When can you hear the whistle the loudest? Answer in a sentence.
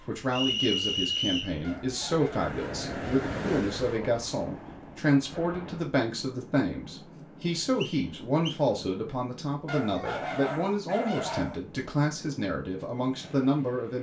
The loudest moment of the whistle is at 1 second.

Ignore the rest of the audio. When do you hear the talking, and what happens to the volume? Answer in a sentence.
The talking can be heard from 0.0 to 13.9 s, at a steady volume.